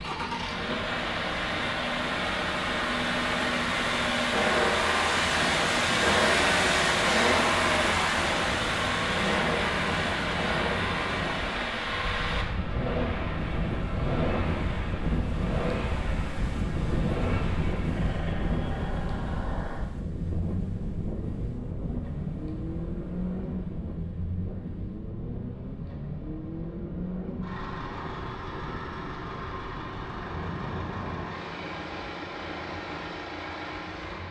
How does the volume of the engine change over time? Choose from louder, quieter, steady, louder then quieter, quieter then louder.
quieter.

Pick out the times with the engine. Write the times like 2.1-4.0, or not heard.
0.0-34.2.